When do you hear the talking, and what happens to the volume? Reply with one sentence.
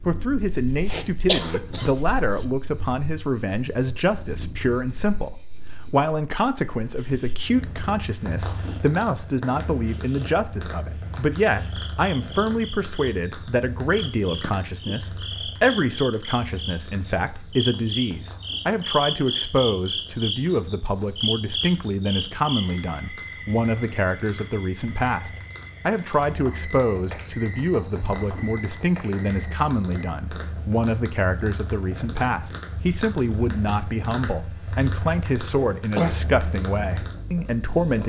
The talking can be heard from 0.1 to 38.0 s, at a steady volume.